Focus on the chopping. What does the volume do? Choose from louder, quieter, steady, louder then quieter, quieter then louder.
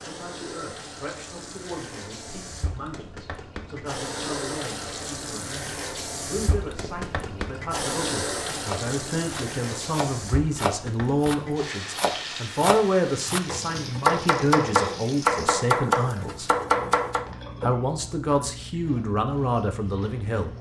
louder.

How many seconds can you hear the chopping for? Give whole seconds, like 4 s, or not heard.
9 s.